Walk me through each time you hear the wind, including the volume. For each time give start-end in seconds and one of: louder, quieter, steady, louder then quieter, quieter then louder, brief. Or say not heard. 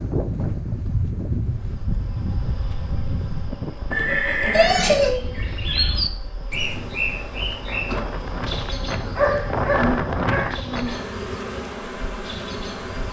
0.0-11.1 quieter then louder.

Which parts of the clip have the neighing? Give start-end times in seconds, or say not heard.
3.9-5.2.